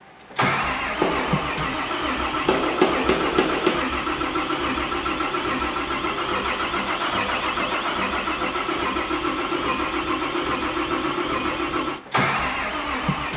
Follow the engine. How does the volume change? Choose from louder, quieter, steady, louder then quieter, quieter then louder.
steady.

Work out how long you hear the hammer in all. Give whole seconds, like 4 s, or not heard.
3 s.